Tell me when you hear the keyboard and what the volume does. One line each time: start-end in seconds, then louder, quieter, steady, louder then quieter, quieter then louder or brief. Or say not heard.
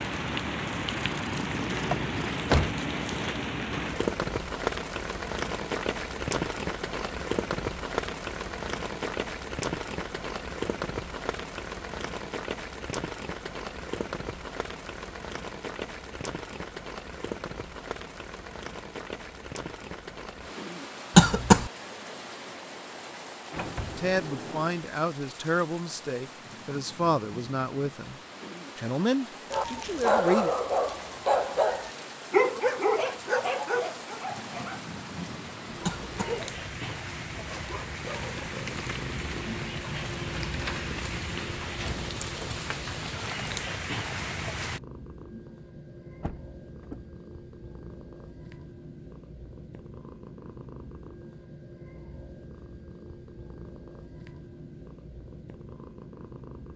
not heard.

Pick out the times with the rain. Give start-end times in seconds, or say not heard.
0.0-44.8.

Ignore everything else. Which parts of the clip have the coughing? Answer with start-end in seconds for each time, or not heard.
21.1-21.7, 35.9-36.4.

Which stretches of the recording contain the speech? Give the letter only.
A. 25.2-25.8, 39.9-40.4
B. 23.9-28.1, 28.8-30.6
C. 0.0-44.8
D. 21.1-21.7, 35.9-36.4
B.